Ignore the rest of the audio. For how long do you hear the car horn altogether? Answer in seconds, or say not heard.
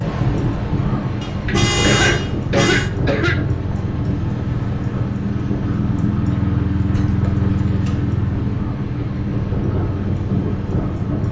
2 s.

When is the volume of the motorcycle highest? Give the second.
7 s.